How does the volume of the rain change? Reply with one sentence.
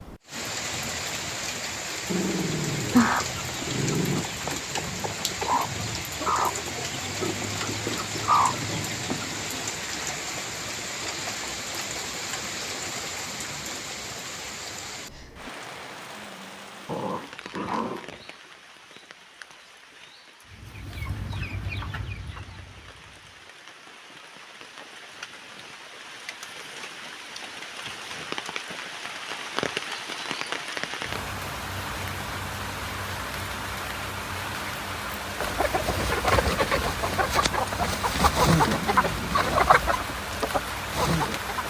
The volume of the rain goes down, then up.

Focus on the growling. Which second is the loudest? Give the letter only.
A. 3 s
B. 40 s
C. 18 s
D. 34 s
A.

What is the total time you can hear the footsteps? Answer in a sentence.
The footsteps can't be heard in this clip.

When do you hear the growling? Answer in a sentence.
The growling can be heard from 2.0 to 4.2 s, from 16.9 to 18.2 s and from 38.6 to 39.5 s.